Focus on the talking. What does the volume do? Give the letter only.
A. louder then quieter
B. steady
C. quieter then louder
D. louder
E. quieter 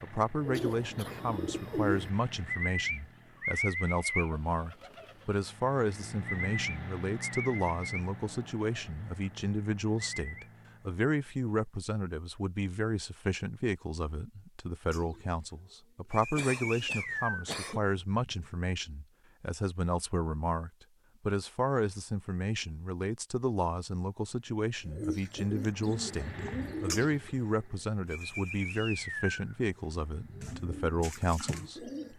B.